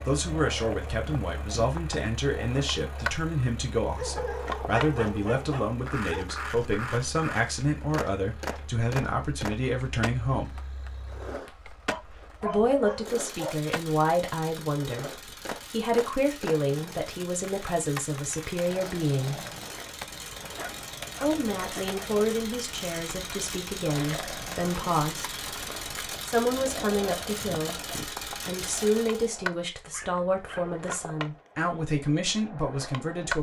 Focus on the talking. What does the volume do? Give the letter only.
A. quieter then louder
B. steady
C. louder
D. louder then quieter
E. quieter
B.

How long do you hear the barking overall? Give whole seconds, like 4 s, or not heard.
7 s.